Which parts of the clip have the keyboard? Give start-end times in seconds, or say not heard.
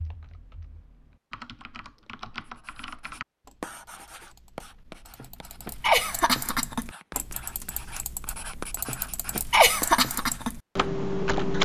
0.0-11.5.